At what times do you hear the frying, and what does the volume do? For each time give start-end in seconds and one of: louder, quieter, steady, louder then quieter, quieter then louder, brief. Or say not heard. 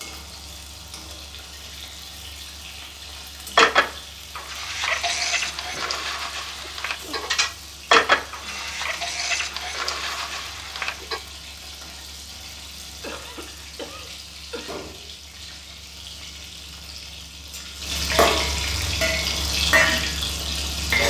0.0-21.0 louder.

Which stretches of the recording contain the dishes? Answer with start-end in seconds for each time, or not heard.
3.5-11.2.